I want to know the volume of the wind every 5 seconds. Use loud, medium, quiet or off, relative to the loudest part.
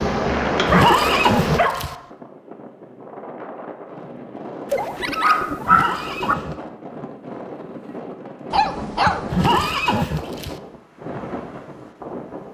loud, medium, medium.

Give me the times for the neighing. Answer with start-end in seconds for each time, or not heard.
0.7-1.9, 5.7-6.6, 9.3-10.6.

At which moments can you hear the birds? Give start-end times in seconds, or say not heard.
not heard.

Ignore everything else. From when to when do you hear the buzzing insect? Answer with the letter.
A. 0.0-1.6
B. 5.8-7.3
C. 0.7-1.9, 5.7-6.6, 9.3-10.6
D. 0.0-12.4
A.